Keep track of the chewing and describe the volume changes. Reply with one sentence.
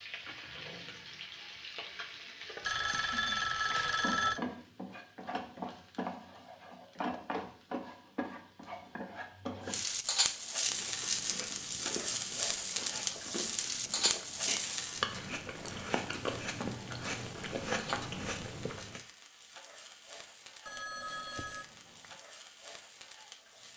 The volume of the chewing goes up.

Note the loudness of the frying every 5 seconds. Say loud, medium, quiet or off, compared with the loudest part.
medium, medium, loud, quiet, quiet.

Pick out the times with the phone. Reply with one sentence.
The phone can be heard from 2.6 to 4.4 s and from 20.6 to 22.1 s.